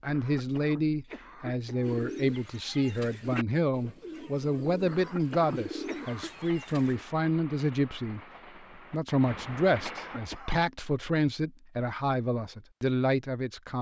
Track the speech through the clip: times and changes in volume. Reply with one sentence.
The speech can be heard from 0.0 to 13.7 s, at a steady volume.